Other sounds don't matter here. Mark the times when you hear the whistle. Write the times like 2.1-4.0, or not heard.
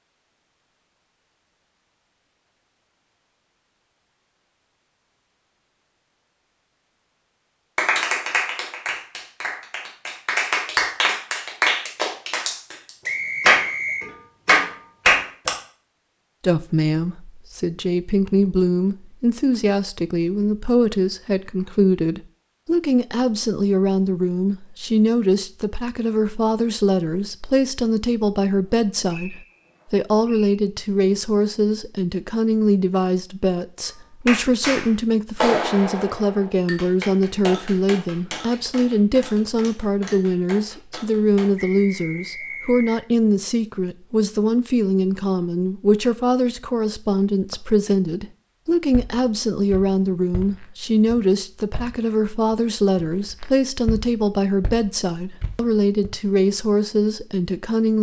13.1-14.1, 29.1-30.6, 41.5-43.0.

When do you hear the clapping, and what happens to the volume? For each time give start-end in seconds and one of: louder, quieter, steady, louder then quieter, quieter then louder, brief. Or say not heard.
7.8-15.5 louder
33.9-41.5 quieter.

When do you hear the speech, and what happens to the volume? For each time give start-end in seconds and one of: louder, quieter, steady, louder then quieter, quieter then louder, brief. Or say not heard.
16.4-57.9 steady.